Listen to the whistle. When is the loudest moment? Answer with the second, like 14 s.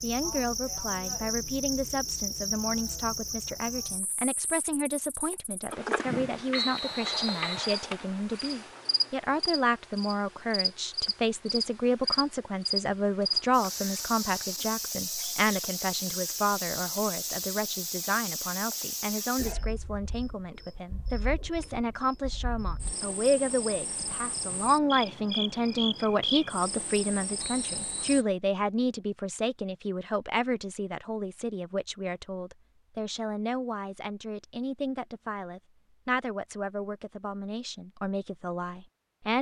7 s.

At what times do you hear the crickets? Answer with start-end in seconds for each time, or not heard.
0.0-28.2.